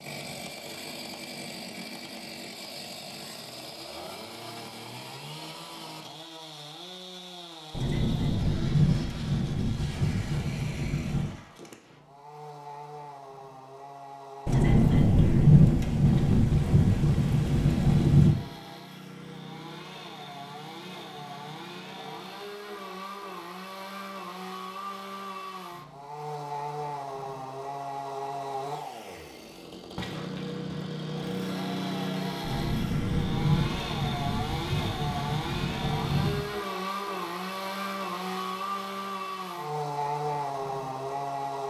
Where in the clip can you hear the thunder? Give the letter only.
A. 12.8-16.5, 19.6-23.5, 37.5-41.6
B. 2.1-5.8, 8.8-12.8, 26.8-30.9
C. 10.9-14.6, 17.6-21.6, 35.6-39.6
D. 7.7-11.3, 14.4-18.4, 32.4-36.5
D.